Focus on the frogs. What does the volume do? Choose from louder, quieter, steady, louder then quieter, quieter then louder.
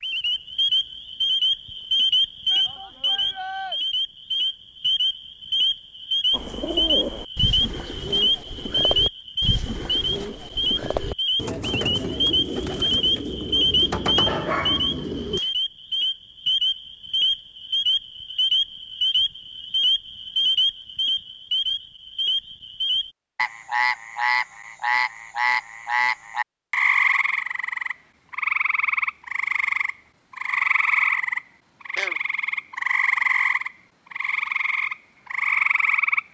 steady.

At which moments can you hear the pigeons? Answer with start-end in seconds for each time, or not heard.
6.3-15.4.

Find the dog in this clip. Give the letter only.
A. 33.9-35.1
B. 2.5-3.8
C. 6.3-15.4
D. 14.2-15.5
D.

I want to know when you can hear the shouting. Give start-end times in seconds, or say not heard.
2.5-3.8.